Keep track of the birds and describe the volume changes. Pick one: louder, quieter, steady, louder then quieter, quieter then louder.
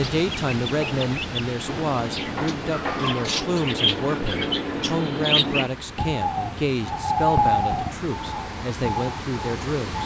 louder then quieter.